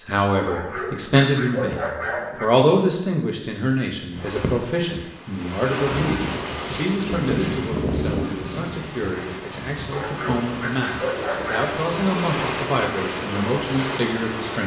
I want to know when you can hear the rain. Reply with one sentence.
The rain can be heard from 4.1 to 14.6 s.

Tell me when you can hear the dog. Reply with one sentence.
You can hear the dog from 0.5 to 2.5 s and from 9.9 to 11.8 s.